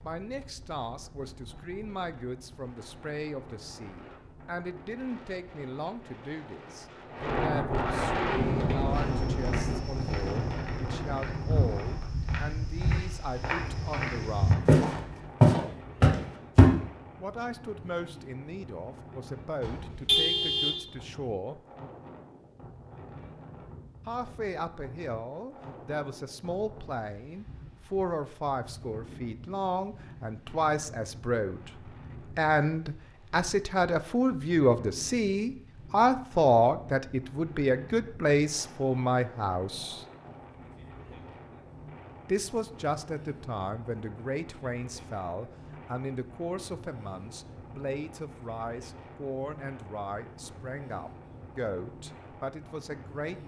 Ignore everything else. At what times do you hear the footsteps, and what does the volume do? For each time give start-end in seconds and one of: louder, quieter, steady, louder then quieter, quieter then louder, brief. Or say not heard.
8.6-16.7 louder.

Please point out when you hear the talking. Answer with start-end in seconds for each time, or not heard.
0.0-14.6, 17.1-21.6, 24.1-40.0, 42.2-53.4.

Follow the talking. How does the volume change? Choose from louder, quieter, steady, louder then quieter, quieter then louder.
louder then quieter.